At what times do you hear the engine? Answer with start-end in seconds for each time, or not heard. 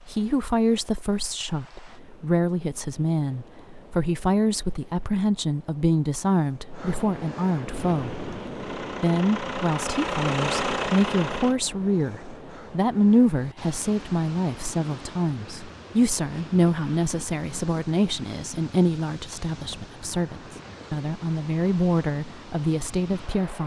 7.7-11.6.